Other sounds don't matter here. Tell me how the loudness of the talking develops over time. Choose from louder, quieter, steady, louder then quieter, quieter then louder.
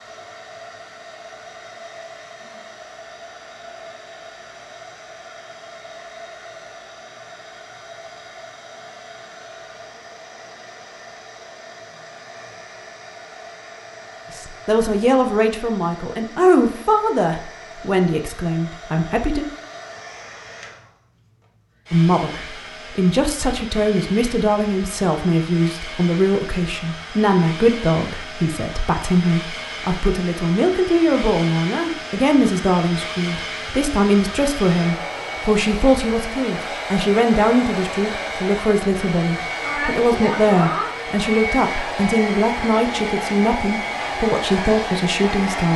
steady.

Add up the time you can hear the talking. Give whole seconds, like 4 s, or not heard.
29 s.